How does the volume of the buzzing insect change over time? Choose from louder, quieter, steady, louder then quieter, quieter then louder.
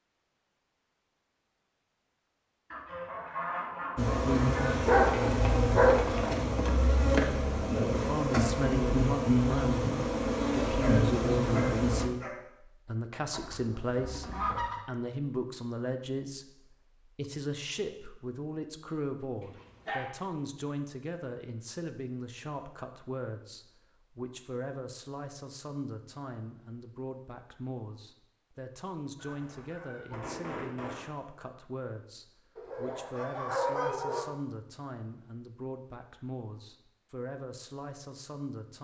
steady.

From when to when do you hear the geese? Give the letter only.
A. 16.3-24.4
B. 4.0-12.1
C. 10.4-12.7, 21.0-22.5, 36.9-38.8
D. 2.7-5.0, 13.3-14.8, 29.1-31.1
D.